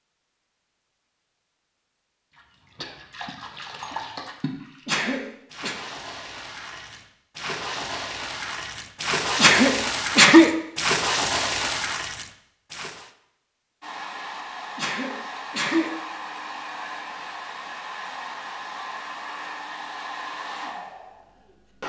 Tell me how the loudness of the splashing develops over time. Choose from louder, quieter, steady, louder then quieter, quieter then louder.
louder.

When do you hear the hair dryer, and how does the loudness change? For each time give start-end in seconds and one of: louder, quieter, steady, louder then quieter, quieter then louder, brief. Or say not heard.
13.8-21.8 steady.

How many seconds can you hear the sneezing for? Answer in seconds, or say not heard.
3 s.